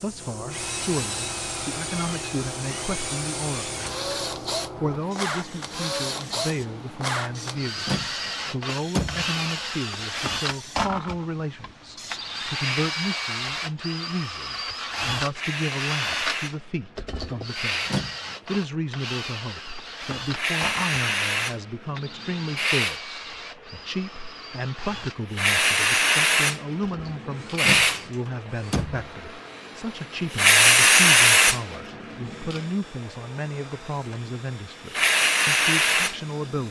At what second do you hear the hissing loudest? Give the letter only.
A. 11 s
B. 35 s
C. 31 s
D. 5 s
C.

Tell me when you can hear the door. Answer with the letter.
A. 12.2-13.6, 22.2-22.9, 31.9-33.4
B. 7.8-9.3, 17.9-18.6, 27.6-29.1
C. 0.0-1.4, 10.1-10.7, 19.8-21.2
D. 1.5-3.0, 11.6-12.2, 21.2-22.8
B.